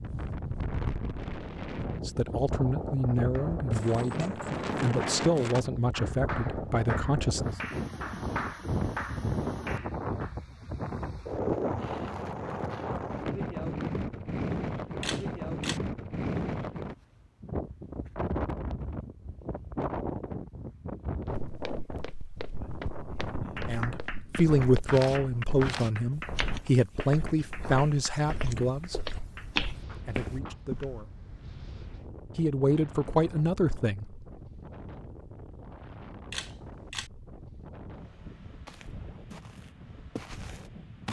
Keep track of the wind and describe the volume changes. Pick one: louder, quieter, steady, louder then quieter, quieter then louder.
quieter.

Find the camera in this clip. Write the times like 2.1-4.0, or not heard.
15.0-15.8, 36.3-37.1.